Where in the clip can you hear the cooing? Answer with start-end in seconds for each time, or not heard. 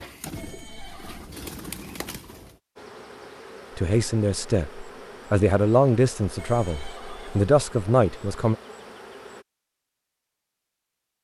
0.0-2.6.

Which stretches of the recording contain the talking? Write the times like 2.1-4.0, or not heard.
3.8-8.6.